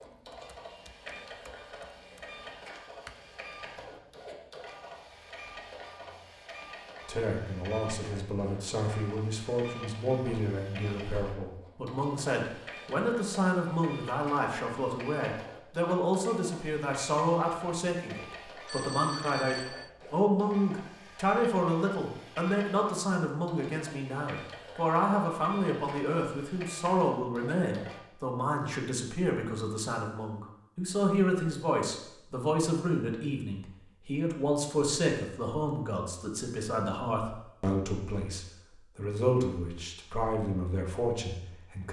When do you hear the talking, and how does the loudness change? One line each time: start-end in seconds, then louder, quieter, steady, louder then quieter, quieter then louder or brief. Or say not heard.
7.0-41.8 steady.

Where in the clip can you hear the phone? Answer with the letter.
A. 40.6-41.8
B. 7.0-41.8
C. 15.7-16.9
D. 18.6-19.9
D.